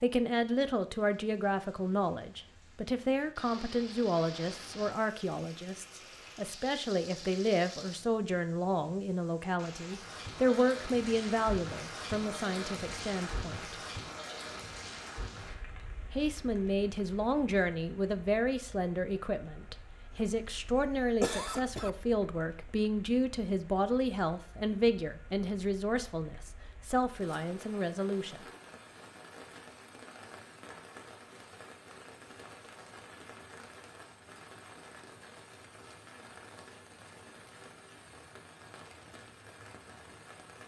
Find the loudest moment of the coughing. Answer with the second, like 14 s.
21 s.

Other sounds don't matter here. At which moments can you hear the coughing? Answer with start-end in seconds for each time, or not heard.
20.1-21.9.